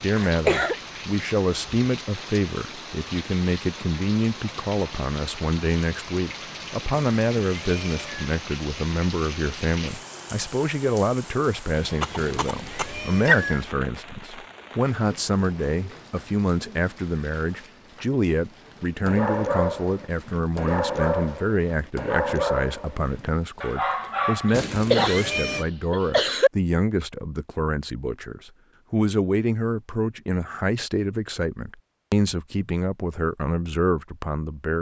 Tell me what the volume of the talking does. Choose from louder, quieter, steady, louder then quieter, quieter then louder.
steady.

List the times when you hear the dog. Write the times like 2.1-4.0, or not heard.
19.1-25.1.